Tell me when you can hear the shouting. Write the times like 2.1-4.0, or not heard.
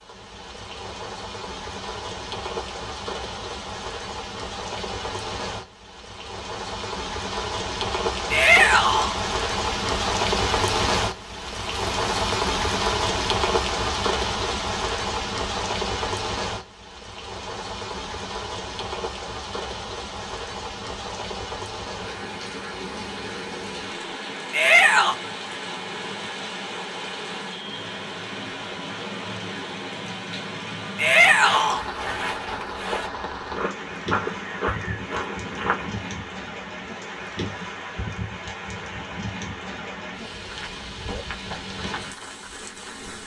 8.3-9.2, 24.5-25.1, 30.9-31.9.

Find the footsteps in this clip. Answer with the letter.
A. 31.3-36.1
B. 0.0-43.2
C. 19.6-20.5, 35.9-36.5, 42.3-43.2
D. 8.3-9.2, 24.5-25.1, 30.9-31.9
A.